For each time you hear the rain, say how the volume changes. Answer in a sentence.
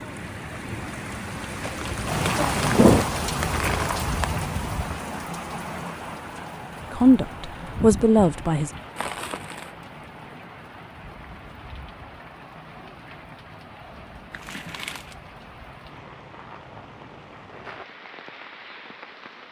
The rain can be heard from 0.0 to 19.4 s, getting quieter.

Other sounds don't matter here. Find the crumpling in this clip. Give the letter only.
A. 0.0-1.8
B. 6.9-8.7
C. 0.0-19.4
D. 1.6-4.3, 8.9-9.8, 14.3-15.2
D.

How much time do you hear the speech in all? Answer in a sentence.
You can hear the speech for 2 seconds altogether.